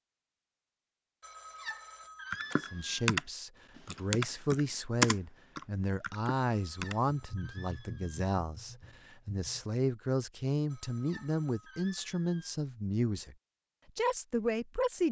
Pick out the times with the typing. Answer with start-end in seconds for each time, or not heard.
2.3-9.7.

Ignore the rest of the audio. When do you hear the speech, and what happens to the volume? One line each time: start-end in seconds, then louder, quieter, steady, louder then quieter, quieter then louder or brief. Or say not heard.
2.6-13.3 steady
13.9-15.0 brief.